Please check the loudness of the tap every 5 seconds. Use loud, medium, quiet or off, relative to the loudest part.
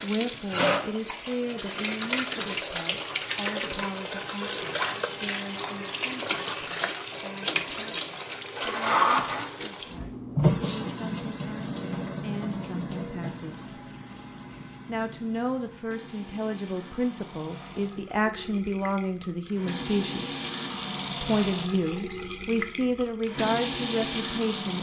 loud, loud, loud, quiet, loud.